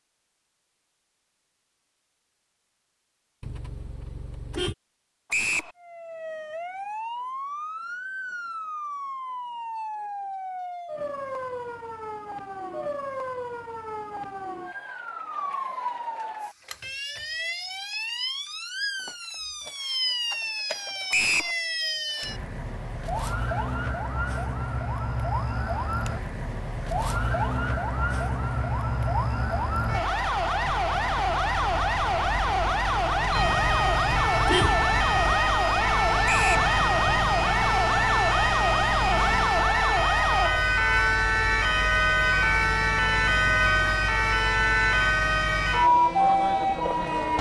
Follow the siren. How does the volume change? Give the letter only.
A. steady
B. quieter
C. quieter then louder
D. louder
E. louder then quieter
D.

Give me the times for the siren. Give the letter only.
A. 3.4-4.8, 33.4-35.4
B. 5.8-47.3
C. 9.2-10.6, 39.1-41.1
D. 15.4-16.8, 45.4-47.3
B.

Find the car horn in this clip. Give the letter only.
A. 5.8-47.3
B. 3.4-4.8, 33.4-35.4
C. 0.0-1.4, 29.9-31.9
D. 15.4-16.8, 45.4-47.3
B.